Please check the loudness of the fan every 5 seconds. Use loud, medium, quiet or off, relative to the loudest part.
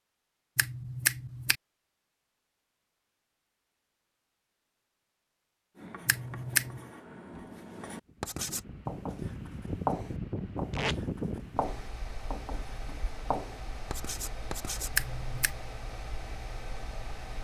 off, loud, loud, medium.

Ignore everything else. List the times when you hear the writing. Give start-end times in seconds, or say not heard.
5.8-14.9.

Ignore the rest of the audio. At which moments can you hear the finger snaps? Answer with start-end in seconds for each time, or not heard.
0.6-1.6, 6.0-6.8, 14.9-15.6.